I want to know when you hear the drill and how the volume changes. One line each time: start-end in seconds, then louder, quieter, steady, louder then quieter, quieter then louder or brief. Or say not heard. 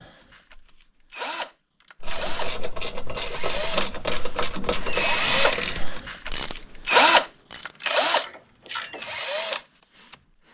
0.0-10.4 louder then quieter.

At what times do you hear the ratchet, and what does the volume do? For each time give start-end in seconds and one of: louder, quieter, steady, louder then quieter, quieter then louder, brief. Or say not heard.
2.0-9.1 quieter.